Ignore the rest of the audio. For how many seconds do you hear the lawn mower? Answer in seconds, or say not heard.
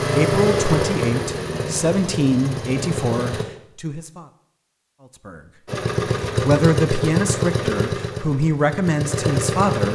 8 s.